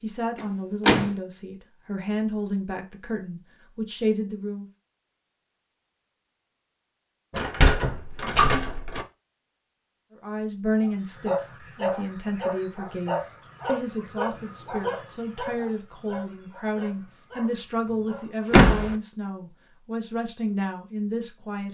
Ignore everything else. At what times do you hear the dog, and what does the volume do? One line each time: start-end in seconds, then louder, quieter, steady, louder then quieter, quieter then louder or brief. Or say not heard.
10.8-18.7 quieter.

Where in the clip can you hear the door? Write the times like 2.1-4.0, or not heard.
0.3-1.1, 7.3-9.1, 18.5-18.9.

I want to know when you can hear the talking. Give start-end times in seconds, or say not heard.
0.0-4.7, 10.2-21.6.